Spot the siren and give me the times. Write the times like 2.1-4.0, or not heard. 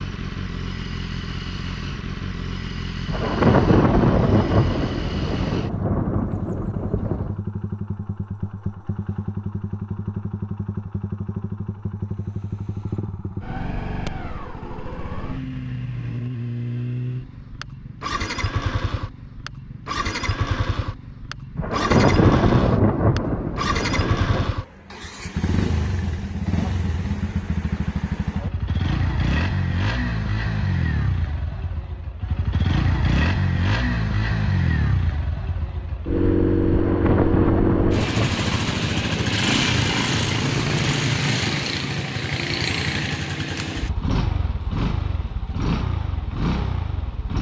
not heard.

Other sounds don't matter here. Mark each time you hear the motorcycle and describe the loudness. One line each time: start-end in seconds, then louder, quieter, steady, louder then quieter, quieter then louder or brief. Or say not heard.
0.0-47.3 louder.